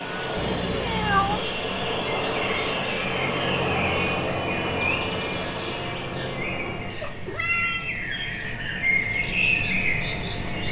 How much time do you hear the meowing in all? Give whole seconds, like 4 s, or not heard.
2 s.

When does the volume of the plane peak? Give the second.
4 s.